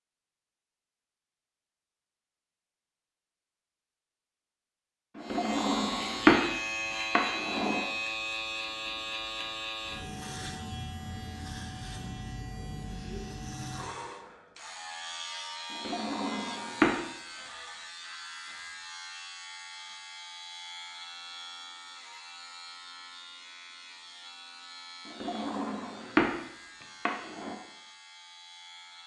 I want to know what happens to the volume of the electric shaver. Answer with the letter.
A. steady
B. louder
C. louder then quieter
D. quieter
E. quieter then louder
D.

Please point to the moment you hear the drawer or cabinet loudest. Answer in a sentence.
The volume of the drawer or cabinet peaks at 6 seconds.